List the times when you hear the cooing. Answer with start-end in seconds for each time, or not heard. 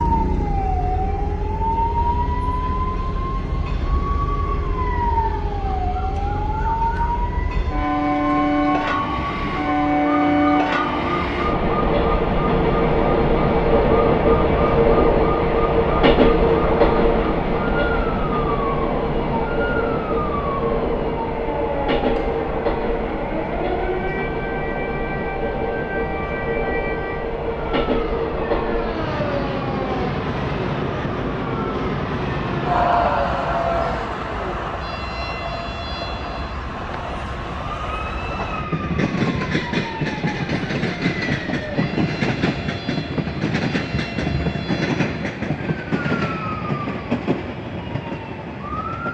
not heard.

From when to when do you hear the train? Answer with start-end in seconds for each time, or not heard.
0.0-49.1.